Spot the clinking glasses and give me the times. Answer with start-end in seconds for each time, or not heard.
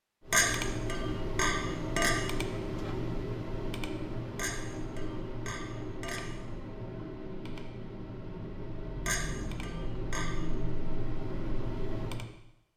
0.3-2.1, 4.3-6.2, 9.1-10.3.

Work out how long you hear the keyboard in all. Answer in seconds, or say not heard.
12 s.